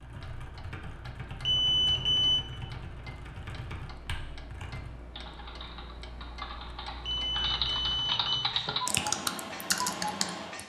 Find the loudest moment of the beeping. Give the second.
2 s.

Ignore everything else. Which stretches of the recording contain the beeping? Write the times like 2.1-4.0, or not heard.
1.4-2.5, 7.0-8.5.